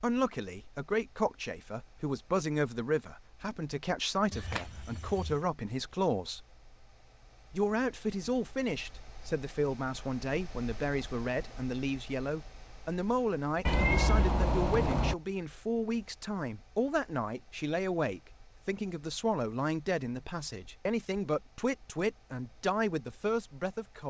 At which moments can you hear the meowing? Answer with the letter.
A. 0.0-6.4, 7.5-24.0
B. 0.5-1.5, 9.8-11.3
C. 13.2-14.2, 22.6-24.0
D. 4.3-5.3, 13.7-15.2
D.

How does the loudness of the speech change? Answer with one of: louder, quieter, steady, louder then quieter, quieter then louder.
steady.